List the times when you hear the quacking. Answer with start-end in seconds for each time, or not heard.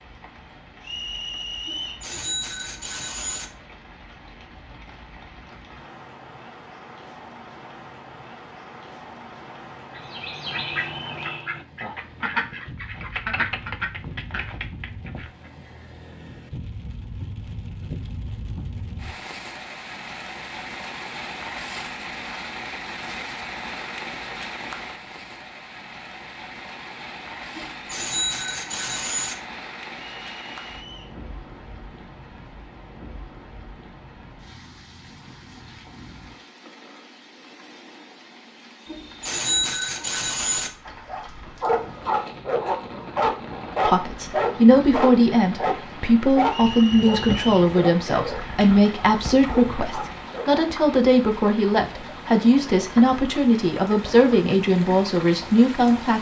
9.9-15.5.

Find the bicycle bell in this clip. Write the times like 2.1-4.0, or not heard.
1.6-3.5, 27.5-29.4, 38.9-40.7.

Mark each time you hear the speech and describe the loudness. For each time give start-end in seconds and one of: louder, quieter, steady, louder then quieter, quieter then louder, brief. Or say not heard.
43.9-56.1 steady.